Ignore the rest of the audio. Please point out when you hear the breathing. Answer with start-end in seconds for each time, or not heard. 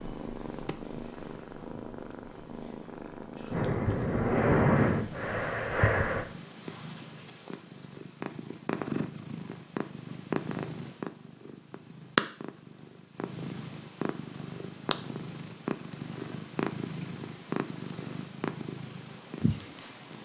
3.5-6.2.